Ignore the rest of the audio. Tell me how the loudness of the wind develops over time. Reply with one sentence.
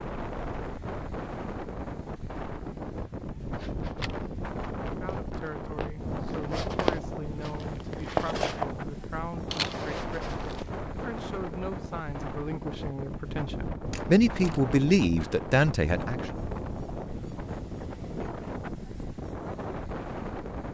The volume of the wind stays about the same.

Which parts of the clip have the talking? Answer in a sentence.
The talking can be heard from 4.9 to 16.2 s.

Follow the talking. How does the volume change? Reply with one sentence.
The volume of the talking goes up.